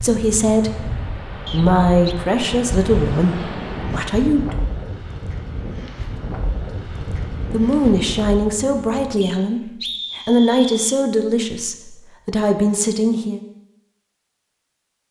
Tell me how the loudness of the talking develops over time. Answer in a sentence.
The volume of the talking stays about the same.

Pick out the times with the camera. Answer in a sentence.
You can't hear the camera here.